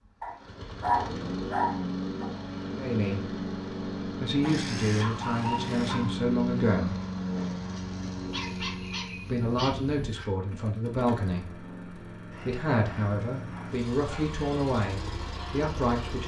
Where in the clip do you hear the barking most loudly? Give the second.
1 s.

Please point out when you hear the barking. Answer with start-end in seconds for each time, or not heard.
0.2-2.2, 4.4-6.1, 8.3-10.2, 12.3-14.3.